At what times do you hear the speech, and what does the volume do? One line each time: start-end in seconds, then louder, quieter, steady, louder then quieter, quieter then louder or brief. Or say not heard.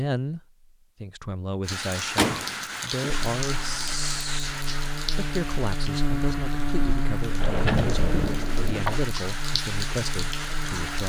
0.0-4.5 louder
5.2-11.0 steady.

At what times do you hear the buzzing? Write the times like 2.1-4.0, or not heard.
3.0-11.0.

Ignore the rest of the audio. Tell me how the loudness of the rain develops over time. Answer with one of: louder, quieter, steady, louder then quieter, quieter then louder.
quieter then louder.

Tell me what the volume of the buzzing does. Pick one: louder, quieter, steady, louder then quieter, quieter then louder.
louder then quieter.